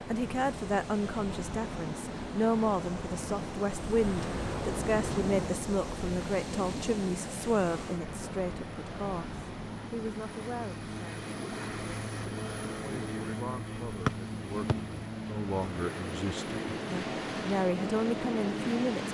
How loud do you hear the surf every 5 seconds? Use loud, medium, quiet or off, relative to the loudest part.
loud, loud, medium, loud.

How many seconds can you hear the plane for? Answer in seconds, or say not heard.
19 s.